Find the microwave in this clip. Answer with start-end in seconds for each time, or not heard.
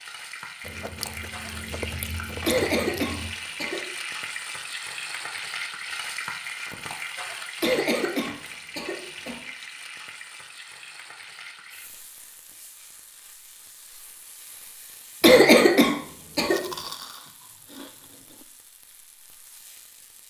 not heard.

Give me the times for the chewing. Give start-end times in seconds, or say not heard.
0.6-3.4, 16.4-18.4.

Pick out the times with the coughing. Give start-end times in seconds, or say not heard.
2.5-3.9, 7.6-9.4, 15.2-16.6.